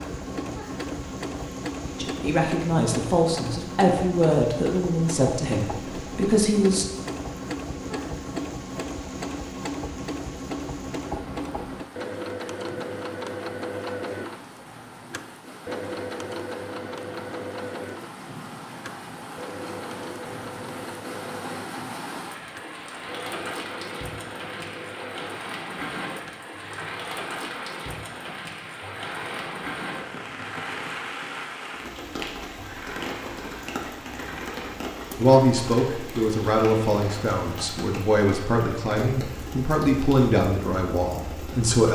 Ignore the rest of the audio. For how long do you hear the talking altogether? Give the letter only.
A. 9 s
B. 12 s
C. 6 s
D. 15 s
B.